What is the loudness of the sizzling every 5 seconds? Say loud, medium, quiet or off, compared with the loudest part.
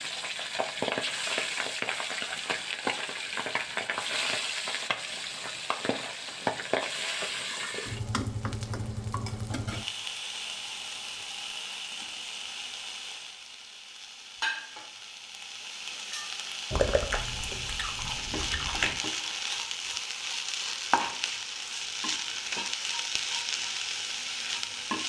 loud, loud, medium, loud, loud.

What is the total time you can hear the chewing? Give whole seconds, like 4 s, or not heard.
2 s.